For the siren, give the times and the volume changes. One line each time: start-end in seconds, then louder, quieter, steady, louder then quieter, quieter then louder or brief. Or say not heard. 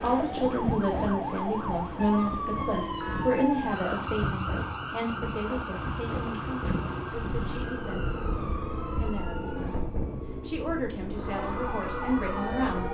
0.0-9.9 quieter
11.2-12.8 brief.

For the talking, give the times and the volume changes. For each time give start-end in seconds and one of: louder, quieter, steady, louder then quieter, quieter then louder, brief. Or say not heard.
0.0-9.7 quieter
10.4-12.8 brief.